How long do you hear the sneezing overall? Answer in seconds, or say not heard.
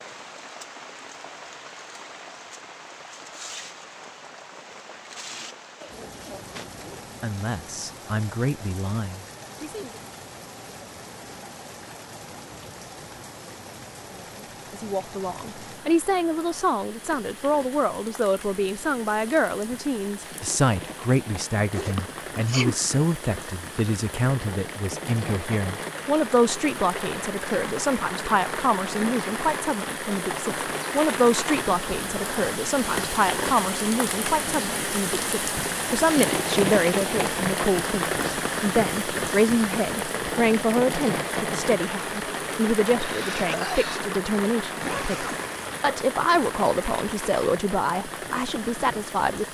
2 s.